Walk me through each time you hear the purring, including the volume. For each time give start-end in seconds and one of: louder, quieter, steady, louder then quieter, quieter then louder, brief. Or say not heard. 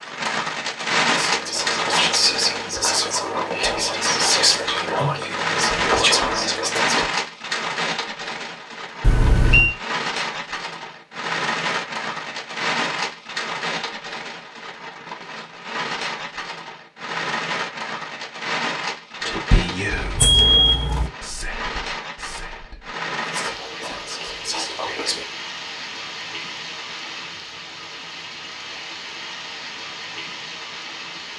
not heard.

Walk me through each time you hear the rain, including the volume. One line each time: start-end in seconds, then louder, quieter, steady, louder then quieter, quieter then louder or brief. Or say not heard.
0.0-31.3 quieter.